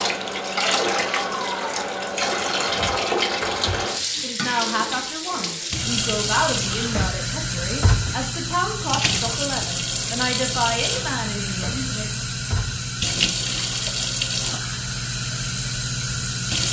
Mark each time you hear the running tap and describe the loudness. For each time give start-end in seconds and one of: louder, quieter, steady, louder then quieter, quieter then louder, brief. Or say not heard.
0.0-16.6 steady.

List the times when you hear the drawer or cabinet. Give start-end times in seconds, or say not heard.
2.6-3.9, 6.8-8.2, 11.5-12.8.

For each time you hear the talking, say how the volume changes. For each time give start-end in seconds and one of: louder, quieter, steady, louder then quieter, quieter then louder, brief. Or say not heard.
4.2-12.2 steady.